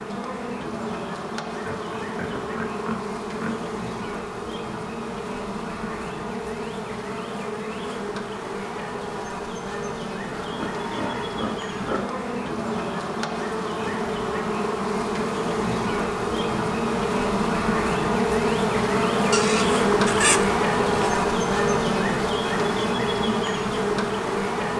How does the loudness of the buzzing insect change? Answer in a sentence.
The loudness of the buzzing insect goes up.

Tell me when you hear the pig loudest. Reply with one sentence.
The loudest moment of the pig is at 20 seconds.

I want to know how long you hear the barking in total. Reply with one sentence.
The barking can't be heard in this clip.